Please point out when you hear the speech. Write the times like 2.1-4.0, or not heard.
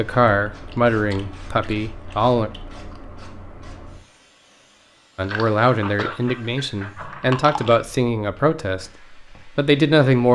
0.0-2.5, 5.2-10.3.